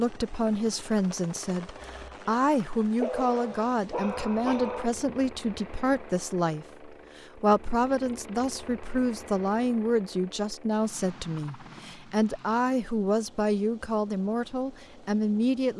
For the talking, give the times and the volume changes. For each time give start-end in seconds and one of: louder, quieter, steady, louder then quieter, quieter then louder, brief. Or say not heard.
0.0-15.7 steady.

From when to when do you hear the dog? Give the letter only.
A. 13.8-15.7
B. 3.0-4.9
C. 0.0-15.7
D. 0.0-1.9
B.